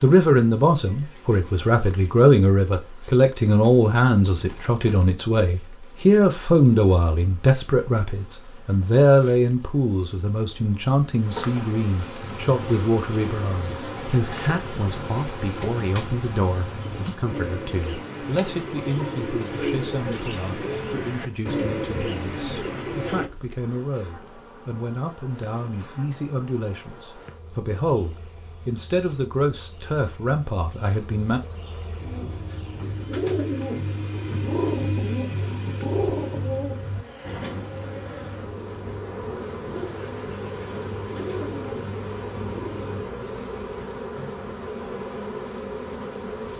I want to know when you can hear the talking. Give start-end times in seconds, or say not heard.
0.0-31.4.